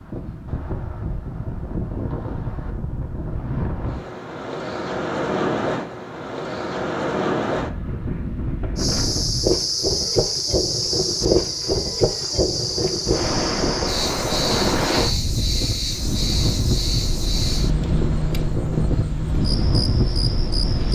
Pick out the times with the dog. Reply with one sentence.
The dog can't be heard in this clip.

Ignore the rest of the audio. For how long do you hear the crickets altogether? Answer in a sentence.
You can hear the crickets for 12 seconds altogether.